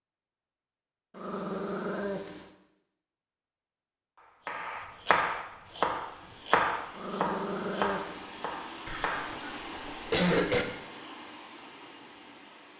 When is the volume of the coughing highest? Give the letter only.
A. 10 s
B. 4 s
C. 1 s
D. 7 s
A.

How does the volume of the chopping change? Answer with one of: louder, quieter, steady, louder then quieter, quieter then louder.
quieter.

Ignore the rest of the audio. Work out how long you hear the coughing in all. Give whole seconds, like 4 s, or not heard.
2 s.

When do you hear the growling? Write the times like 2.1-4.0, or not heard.
1.1-2.5, 6.9-8.3.